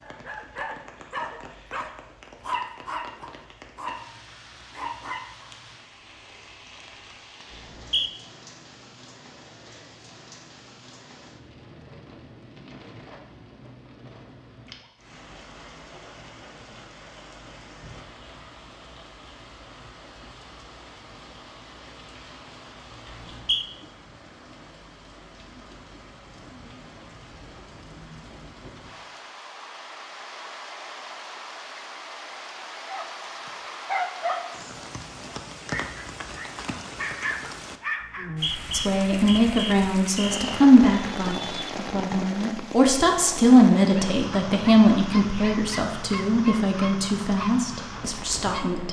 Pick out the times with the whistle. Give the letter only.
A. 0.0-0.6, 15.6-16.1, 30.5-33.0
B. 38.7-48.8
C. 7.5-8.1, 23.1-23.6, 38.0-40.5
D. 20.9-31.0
C.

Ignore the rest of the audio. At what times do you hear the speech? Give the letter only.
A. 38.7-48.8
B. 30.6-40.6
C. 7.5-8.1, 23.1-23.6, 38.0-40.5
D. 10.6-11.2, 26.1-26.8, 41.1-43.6
A.